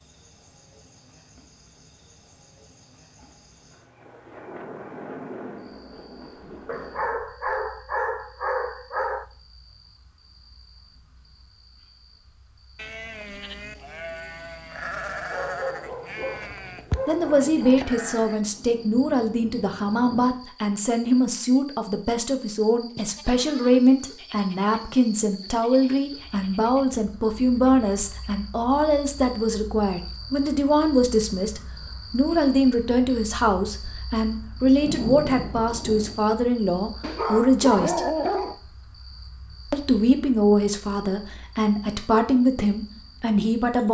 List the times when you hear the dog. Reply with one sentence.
The dog can be heard from 6.7 to 9.2 s, from 15.3 to 17.9 s and from 37.0 to 38.5 s.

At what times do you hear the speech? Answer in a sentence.
The speech can be heard from 17.1 to 38.1 s and from 39.7 to 43.8 s.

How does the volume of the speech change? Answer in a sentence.
The loudness of the speech stays about the same.